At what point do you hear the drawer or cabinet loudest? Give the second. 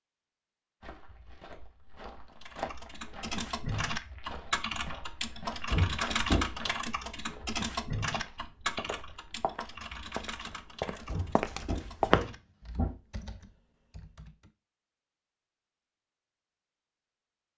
6 s.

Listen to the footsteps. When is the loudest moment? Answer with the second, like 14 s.
12 s.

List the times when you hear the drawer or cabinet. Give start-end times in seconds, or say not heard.
5.7-6.5, 11.1-12.9.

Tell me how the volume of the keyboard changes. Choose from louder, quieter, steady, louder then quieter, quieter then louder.
quieter.